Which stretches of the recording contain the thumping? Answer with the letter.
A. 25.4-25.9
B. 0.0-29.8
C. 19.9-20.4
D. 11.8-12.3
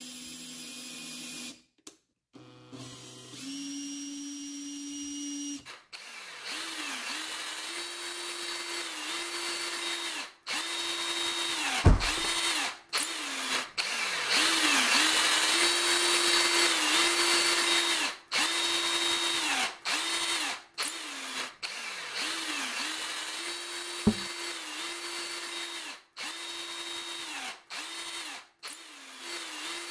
D.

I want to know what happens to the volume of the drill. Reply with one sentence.
The volume of the drill goes up, then down.